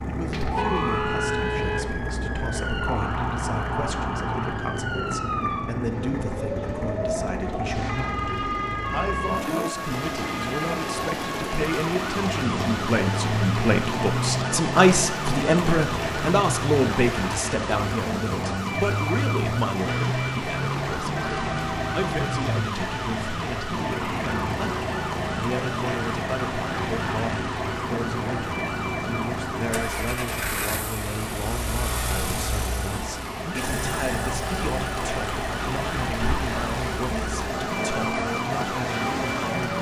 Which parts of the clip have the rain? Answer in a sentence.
You can hear the rain from 9.7 to 39.7 s.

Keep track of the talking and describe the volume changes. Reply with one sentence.
The volume of the talking goes up, then down.